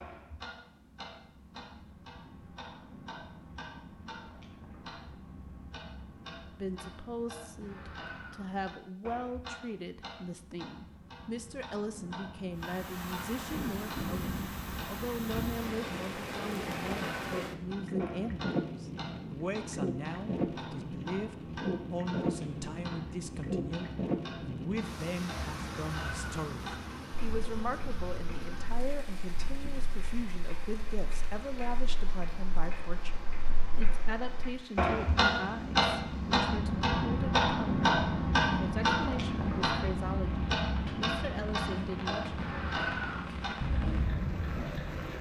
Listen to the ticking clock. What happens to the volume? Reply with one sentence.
The volume of the ticking clock goes up.